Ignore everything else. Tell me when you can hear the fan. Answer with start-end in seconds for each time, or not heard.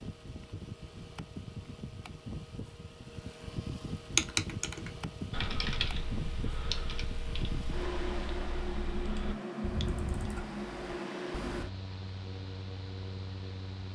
0.0-13.9.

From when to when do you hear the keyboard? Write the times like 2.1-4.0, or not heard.
4.2-11.7.